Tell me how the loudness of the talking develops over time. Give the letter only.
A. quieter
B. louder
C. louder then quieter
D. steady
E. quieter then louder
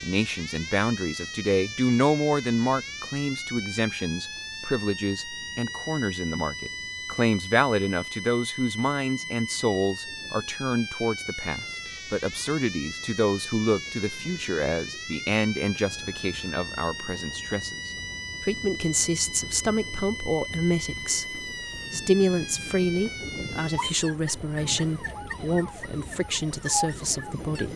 D.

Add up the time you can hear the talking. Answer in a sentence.
You can hear the talking for 28 seconds altogether.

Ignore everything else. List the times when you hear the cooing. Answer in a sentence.
The cooing can't be heard in this clip.